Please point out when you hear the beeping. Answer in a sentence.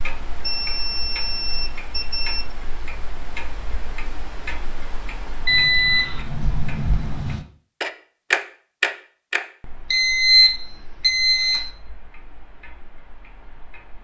The beeping can be heard from 0.4 to 2.5 s, from 5.5 to 7.5 s and from 9.9 to 11.7 s.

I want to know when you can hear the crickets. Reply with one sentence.
You can't hear the crickets here.